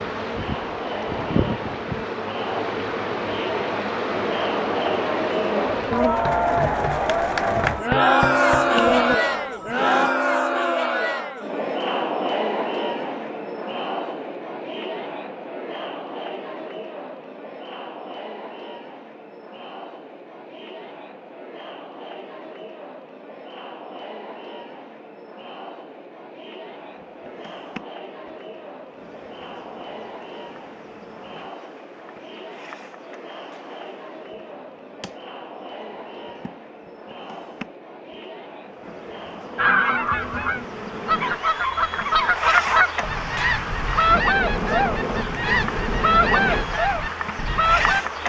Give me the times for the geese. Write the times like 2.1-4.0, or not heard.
39.5-48.0.